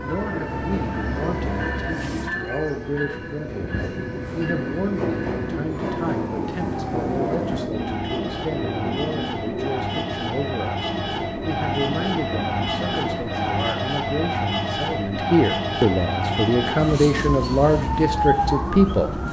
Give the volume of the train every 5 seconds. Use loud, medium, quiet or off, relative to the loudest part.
loud, loud, medium, medium.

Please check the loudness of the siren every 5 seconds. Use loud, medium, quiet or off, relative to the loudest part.
medium, medium, loud, loud.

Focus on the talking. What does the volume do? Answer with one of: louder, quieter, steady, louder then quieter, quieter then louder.
louder.